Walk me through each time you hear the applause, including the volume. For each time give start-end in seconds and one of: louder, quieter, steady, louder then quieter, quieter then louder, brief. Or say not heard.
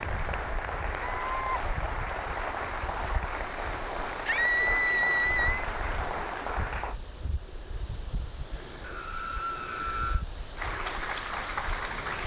0.0-7.0 steady
10.6-12.2 brief.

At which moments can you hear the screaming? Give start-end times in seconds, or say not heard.
1.0-1.6, 4.2-5.7, 8.8-10.2.